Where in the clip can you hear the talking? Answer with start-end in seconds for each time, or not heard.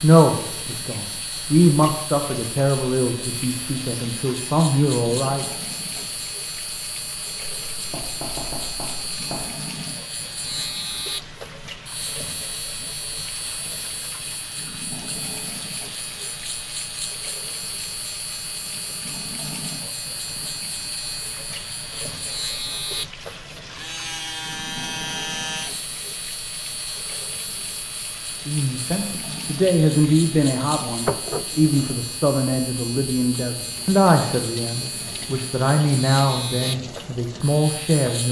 0.0-5.5, 28.4-38.2.